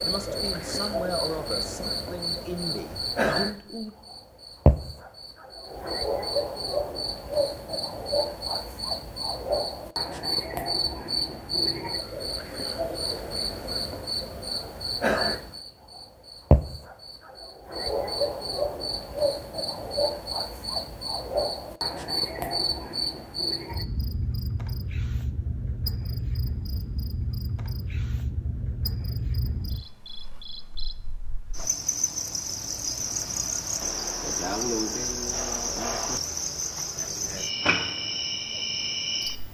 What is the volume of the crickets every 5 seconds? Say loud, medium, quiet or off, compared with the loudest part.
loud, loud, loud, loud, loud, medium, loud, loud.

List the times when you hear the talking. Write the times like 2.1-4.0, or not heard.
0.0-4.0.